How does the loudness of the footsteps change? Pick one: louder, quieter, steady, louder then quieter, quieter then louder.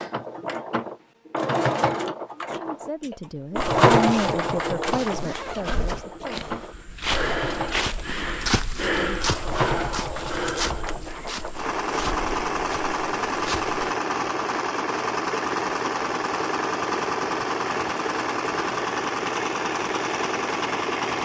louder then quieter.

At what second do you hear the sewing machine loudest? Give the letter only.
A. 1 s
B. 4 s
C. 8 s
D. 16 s
B.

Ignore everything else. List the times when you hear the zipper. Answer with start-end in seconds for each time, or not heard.
5.1-6.0.